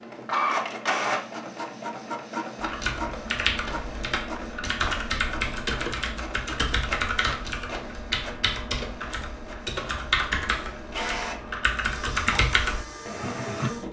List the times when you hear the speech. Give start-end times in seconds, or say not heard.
not heard.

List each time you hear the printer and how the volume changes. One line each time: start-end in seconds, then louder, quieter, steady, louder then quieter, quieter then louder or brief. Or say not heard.
0.0-13.8 quieter then louder.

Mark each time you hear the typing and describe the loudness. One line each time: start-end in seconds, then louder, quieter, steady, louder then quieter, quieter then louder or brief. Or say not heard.
2.6-13.7 steady.